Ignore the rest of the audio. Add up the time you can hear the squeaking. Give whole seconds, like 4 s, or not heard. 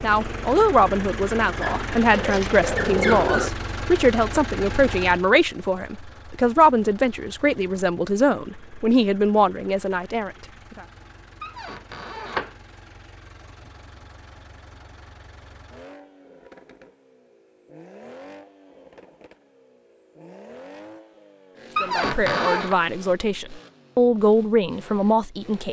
4 s.